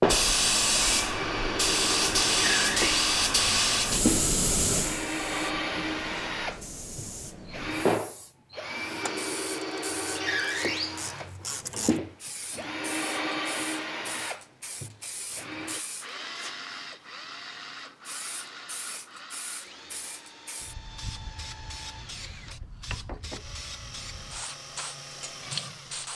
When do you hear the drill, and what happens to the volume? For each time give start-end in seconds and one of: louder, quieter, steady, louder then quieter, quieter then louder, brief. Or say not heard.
0.0-26.0 quieter.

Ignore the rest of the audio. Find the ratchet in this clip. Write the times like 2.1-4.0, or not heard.
9.0-12.0.